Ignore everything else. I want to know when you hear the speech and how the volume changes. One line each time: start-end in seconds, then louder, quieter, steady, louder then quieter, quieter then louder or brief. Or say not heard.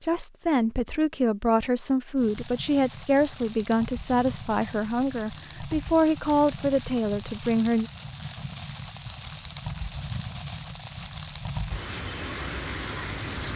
0.0-7.9 steady.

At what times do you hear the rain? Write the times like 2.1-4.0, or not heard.
2.1-13.5.